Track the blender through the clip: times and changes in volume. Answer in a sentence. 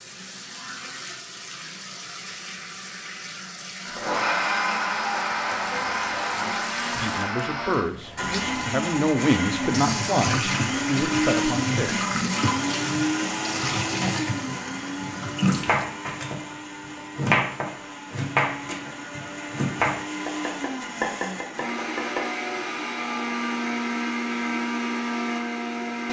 You can hear the blender from 3.8 to 26.0 s, getting quieter then louder.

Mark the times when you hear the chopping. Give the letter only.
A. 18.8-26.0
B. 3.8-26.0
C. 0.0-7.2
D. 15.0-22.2
D.